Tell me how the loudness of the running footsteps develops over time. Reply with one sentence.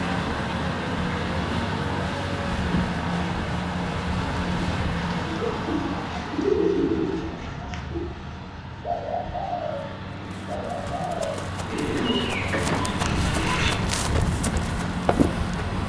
The loudness of the running footsteps goes up.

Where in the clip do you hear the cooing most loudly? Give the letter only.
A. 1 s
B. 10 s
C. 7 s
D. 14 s
C.